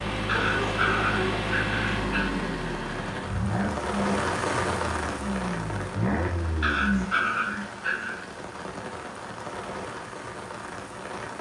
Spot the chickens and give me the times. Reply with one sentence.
The chickens can be heard from 0.3 to 1.4 s.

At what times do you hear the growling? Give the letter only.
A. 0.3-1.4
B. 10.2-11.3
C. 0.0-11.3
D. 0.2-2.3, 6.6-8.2
D.